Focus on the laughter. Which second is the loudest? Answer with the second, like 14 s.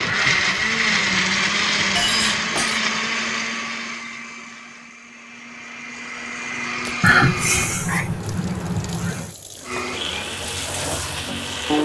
7 s.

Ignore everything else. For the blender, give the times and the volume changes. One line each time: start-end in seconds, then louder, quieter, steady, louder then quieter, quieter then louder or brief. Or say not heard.
0.0-7.7 quieter then louder
9.7-11.7 brief.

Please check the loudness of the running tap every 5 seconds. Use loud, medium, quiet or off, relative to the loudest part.
off, medium, loud.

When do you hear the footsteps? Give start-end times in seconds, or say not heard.
not heard.